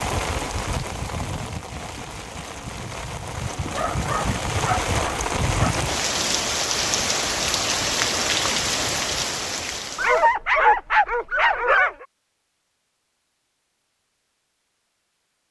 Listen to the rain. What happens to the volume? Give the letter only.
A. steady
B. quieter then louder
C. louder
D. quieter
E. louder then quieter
C.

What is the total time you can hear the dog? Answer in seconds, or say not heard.
4 s.